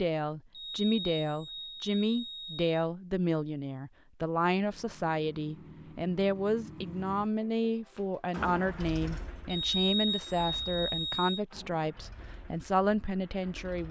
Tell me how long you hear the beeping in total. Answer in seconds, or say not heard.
4 s.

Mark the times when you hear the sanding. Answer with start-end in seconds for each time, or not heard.
not heard.